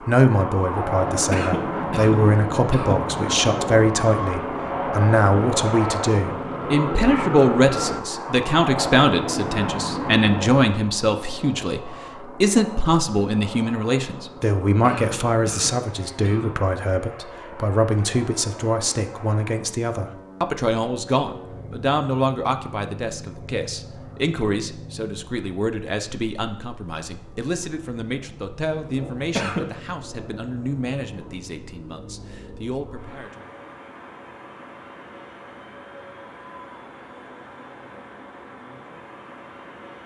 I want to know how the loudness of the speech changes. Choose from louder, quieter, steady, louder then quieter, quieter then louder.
quieter.